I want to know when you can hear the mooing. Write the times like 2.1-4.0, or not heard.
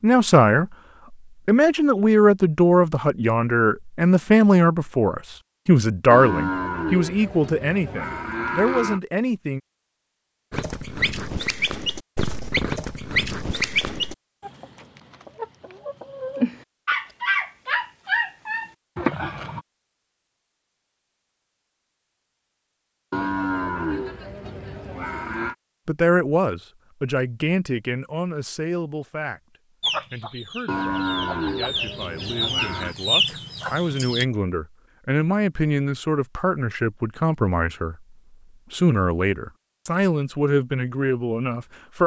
6.1-9.0, 23.1-25.6, 30.6-33.0.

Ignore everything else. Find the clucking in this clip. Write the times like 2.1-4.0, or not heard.
10.5-19.6, 29.8-34.2.